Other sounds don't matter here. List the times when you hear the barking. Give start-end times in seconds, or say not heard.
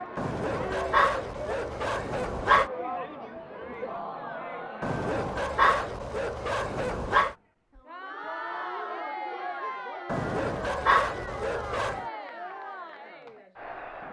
0.1-2.7, 4.8-7.3, 10.1-12.1.